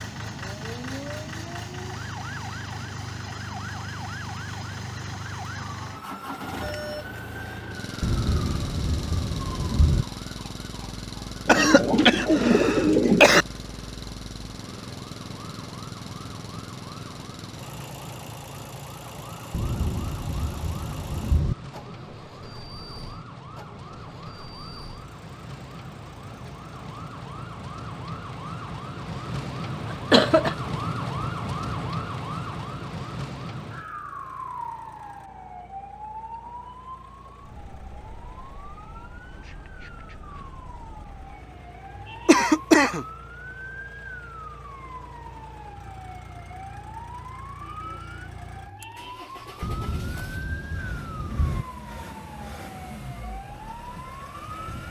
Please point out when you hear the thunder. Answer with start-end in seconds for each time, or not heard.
8.0-10.1, 19.5-21.6, 49.6-51.6.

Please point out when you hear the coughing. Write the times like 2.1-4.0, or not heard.
11.4-13.4, 29.9-30.6, 42.2-43.0.